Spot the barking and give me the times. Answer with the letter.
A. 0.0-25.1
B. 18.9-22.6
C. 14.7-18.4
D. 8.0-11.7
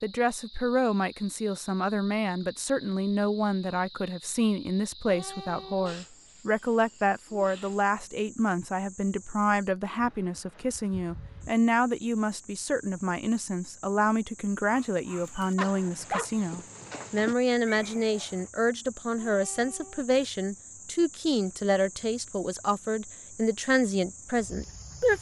C.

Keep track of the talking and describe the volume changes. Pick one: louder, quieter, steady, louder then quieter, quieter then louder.
steady.